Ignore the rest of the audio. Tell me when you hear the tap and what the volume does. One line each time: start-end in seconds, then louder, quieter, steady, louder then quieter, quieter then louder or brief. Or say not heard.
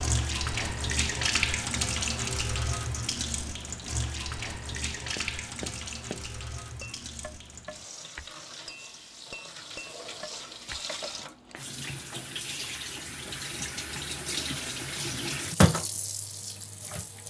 0.0-17.2 quieter then louder.